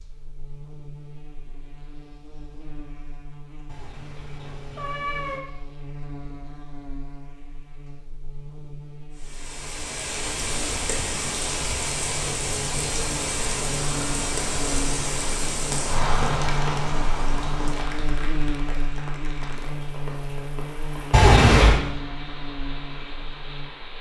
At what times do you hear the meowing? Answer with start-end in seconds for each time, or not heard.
3.6-5.4, 21.1-21.8.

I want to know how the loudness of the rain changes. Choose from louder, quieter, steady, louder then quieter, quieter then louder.
quieter.